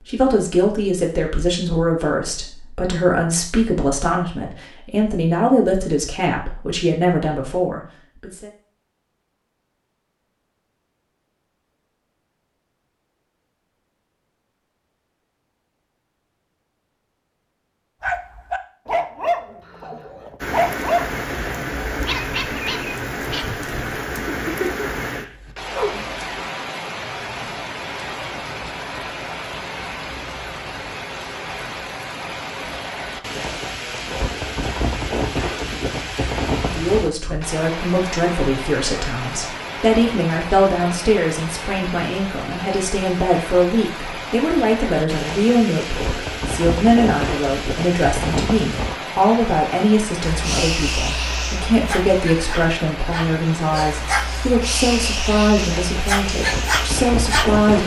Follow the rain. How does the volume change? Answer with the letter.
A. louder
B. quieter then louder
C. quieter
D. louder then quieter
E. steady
E.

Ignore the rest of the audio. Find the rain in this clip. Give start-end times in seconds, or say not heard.
20.4-57.8.